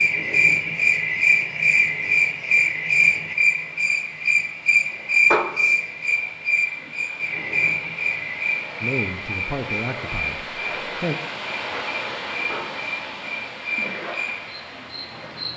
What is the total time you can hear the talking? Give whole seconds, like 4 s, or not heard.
2 s.